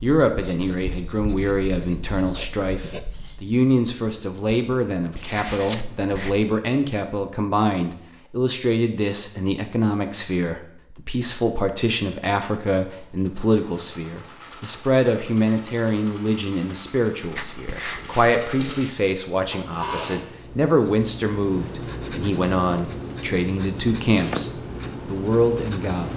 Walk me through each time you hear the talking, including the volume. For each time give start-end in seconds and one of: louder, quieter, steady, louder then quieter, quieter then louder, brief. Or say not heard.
0.0-26.1 steady.